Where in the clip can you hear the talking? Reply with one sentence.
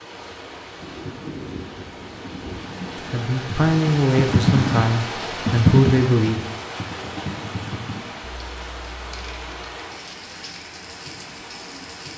The talking can be heard from 3.0 to 6.4 s.